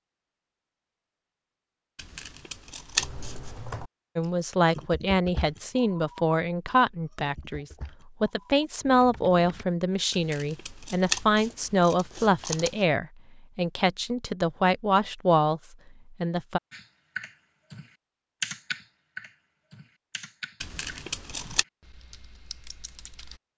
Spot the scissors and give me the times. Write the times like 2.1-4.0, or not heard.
1.9-3.6, 10.1-12.8, 20.6-21.6.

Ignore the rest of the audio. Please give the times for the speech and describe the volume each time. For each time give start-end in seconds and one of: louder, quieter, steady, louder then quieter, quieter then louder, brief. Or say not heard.
4.2-16.6 steady.